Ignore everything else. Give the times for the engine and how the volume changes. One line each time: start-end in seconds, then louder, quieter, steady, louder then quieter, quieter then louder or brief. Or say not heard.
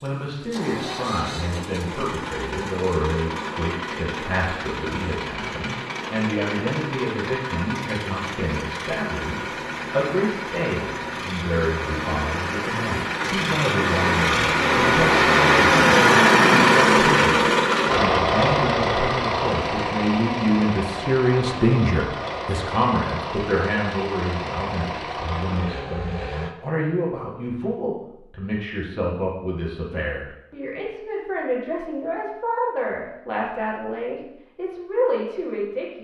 0.0-26.6 louder then quieter.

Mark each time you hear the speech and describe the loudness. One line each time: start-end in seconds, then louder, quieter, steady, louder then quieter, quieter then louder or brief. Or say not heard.
0.0-36.0 steady.